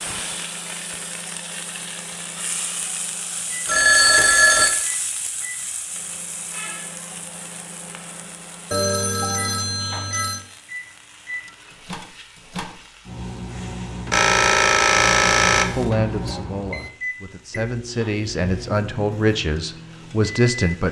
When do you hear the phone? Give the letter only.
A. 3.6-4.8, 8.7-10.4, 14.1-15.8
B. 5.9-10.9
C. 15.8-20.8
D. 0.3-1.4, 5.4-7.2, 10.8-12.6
A.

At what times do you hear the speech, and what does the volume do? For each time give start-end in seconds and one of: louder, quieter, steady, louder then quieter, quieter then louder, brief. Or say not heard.
15.8-20.8 louder.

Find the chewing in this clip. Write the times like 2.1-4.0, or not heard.
not heard.